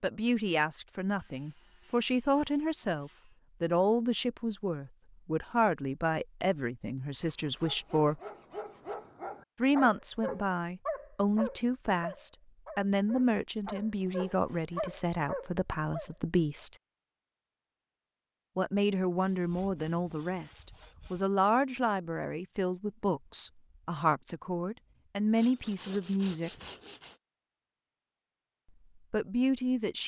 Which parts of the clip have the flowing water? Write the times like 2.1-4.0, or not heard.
not heard.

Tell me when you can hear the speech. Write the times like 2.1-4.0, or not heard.
0.0-8.2, 9.6-16.7, 18.6-26.5, 29.1-30.0.